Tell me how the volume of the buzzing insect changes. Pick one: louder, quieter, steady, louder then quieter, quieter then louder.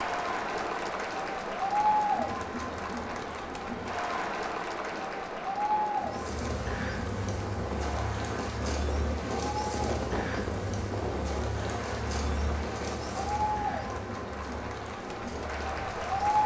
quieter.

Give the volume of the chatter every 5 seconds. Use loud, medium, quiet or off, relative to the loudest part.
loud, medium, medium, loud.